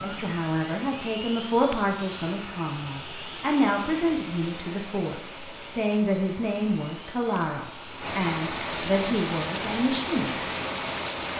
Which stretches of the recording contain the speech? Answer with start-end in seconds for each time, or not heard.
0.0-10.4.